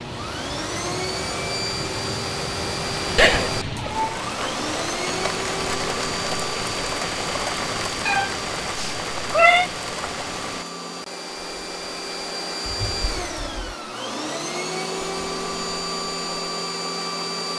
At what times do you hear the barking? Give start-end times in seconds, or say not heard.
not heard.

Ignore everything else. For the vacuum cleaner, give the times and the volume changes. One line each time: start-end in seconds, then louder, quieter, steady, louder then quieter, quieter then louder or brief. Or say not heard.
0.0-17.5 quieter then louder.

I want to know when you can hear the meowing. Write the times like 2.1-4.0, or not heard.
3.1-4.2, 8.1-9.7, 12.7-13.7.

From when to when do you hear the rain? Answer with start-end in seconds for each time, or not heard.
0.0-10.7.